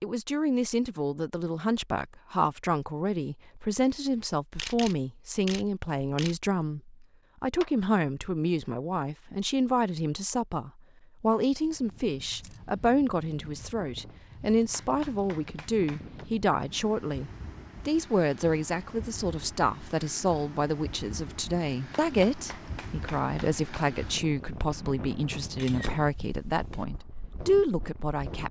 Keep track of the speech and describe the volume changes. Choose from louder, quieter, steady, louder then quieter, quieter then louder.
steady.